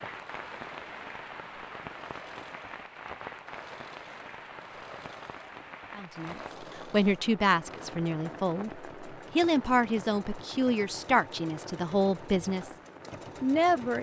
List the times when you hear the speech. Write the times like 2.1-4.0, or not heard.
6.0-12.8, 13.4-13.9.